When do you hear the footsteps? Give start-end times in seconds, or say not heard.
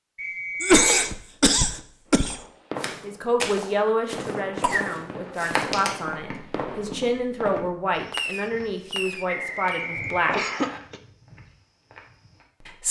2.8-12.4.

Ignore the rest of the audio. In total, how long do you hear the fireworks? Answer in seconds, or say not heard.
8 s.